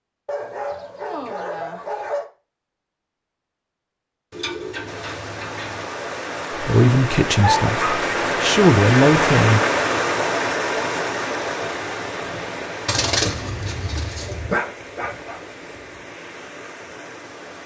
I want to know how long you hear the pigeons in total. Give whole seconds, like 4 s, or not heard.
3 s.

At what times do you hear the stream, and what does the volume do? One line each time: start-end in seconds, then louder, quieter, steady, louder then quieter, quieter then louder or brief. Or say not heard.
4.8-17.6 louder then quieter.